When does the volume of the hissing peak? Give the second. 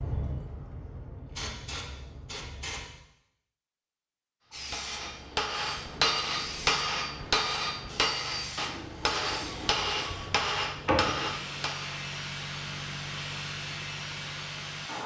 11 s.